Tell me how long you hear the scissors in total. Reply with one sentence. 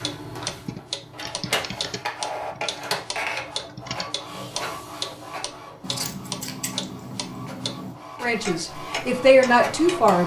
The scissors can be heard for 3 seconds in total.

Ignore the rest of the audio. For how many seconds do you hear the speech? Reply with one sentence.
You can hear the speech for 2 seconds altogether.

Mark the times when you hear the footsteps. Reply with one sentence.
The footsteps can't be heard in this clip.